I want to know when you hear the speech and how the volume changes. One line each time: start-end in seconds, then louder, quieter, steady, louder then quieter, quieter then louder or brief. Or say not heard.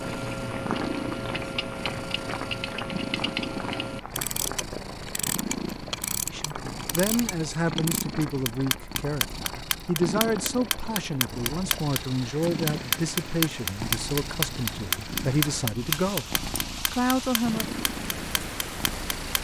6.2-16.3 steady
16.9-17.8 brief.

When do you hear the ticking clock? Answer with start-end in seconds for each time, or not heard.
0.0-19.3.